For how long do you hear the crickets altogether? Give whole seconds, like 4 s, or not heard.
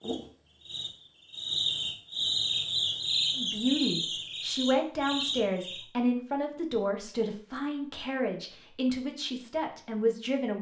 6 s.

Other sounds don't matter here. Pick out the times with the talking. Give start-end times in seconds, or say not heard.
3.4-10.5.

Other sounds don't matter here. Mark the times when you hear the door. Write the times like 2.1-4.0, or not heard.
not heard.